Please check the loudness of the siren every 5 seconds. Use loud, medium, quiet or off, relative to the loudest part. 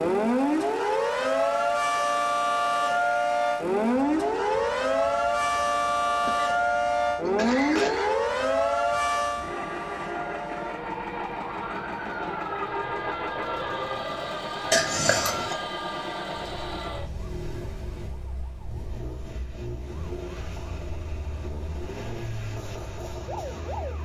loud, loud, quiet, quiet, quiet.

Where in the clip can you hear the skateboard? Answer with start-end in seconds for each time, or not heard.
not heard.